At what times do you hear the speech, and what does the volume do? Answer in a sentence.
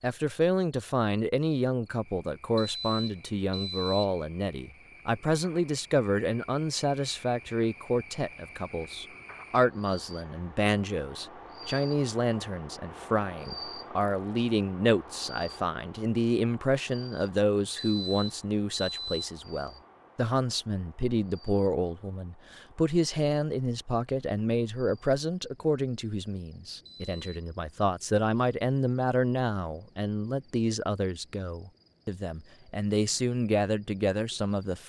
You can hear the speech from 0.0 to 34.8 s, at a steady volume.